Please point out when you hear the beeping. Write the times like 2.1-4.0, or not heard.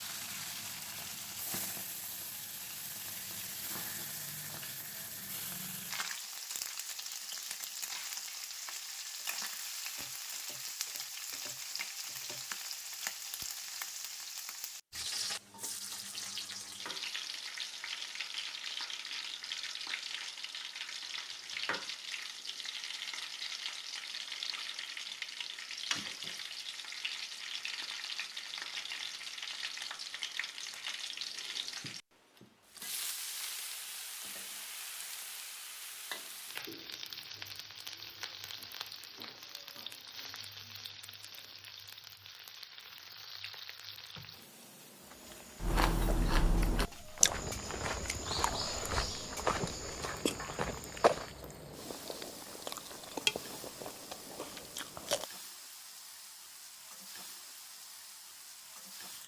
not heard.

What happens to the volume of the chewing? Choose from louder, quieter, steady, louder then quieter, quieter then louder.
quieter then louder.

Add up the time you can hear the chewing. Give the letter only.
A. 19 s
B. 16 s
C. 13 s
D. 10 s
D.